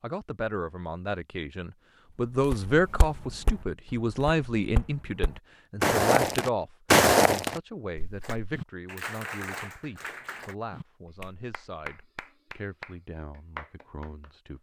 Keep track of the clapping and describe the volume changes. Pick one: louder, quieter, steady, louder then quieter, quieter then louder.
quieter then louder.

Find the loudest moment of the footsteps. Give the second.
7 s.